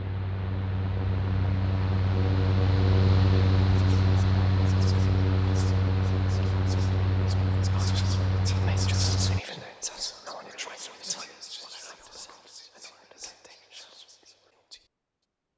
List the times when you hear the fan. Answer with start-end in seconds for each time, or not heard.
0.0-9.4.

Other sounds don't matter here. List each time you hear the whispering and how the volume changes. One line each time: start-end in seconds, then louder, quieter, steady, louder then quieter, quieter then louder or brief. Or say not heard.
3.8-14.8 louder then quieter.